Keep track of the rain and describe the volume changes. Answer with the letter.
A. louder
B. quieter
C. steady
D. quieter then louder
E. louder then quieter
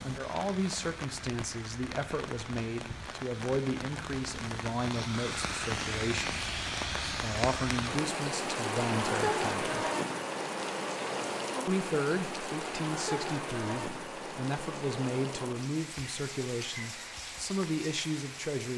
E.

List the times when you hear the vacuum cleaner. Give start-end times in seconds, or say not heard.
not heard.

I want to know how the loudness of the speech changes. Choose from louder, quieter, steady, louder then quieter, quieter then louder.
steady.